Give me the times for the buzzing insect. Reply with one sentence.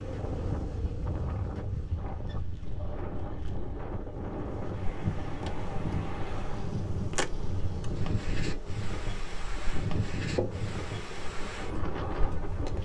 You can hear the buzzing insect from 0.0 to 12.8 s.